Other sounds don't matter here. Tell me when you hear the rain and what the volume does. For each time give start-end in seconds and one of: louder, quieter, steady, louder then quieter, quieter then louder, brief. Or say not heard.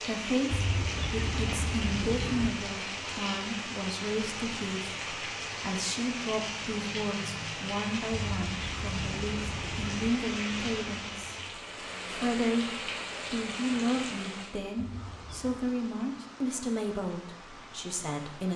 0.0-18.5 quieter.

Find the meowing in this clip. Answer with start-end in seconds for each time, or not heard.
0.5-2.5, 8.1-10.1, 14.8-15.7.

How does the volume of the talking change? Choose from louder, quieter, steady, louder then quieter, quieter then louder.
steady.